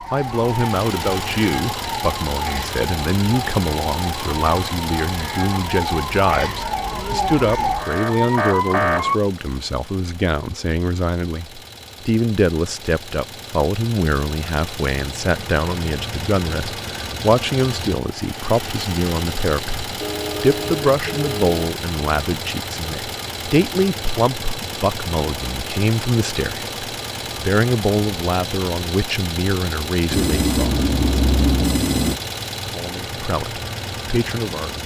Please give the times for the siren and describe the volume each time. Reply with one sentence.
You can hear the siren from 0.0 to 9.2 s, getting louder.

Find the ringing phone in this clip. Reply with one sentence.
You can hear the ringing phone from 30.1 to 32.2 s.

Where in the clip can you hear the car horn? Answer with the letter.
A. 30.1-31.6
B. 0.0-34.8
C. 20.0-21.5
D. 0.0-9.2
C.